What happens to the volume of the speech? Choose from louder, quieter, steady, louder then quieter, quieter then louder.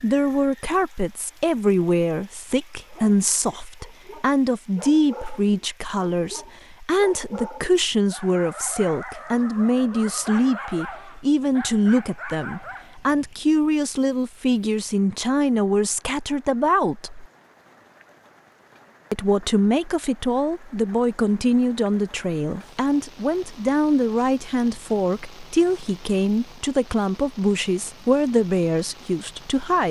steady.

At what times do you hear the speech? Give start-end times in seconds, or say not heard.
0.0-17.2, 19.1-29.8.